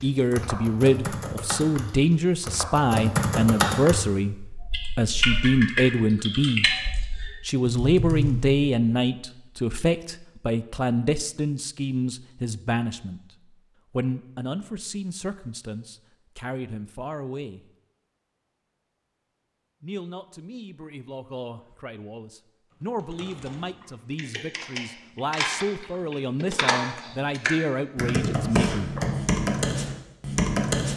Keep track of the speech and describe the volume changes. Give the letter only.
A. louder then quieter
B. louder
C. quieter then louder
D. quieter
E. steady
C.